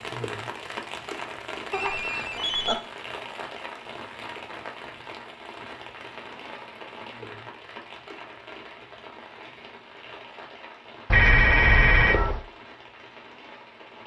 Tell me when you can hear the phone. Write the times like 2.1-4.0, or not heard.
1.7-2.8, 11.1-12.4.